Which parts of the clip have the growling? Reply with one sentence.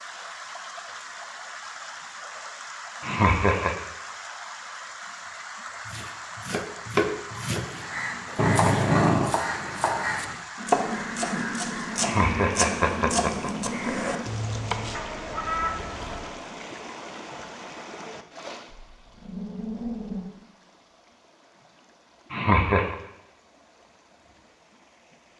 You can hear the growling from 8.3 to 9.4 s and from 18.6 to 20.2 s.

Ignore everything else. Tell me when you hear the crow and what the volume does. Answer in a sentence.
The crow can be heard from 7.5 to 16.4 s, at a steady volume.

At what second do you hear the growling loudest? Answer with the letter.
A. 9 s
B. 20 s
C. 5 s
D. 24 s
A.